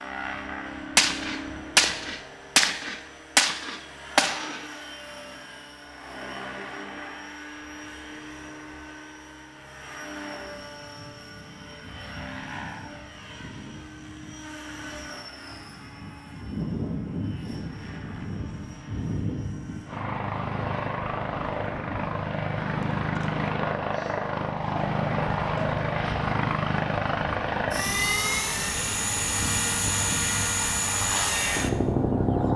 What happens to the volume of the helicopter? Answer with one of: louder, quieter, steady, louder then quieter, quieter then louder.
louder.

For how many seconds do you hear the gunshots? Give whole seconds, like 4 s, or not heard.
4 s.